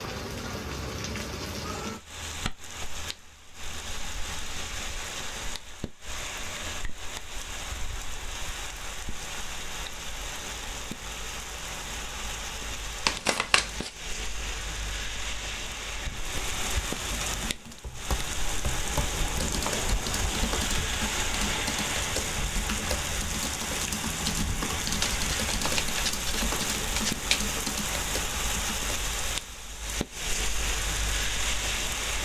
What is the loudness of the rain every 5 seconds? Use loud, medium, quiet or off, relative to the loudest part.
medium, medium, medium, loud, loud, loud, loud.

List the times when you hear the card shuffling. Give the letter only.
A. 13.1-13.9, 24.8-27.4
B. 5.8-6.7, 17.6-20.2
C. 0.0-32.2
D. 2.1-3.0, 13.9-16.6
A.